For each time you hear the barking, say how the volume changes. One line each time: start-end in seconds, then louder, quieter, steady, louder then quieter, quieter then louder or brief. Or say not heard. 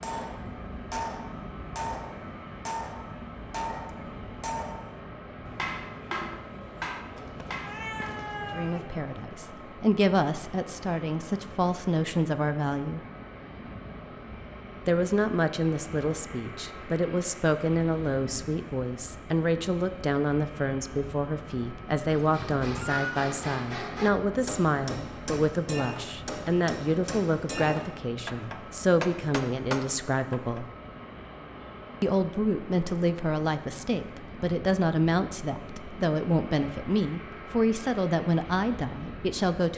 not heard.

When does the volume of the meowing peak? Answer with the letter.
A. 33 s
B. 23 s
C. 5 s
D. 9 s
B.